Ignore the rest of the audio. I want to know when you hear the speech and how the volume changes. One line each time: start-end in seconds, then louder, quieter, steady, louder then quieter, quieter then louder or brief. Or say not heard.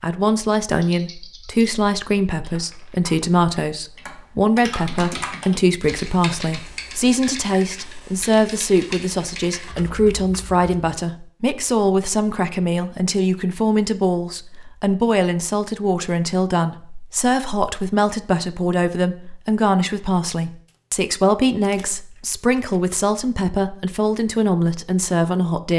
0.0-25.7 steady.